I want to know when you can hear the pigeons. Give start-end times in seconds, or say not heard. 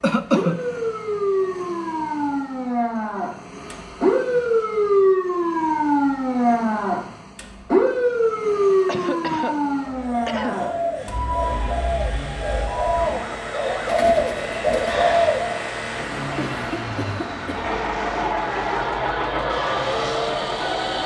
9.8-15.7.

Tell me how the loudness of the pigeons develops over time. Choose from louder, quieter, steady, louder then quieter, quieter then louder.
louder.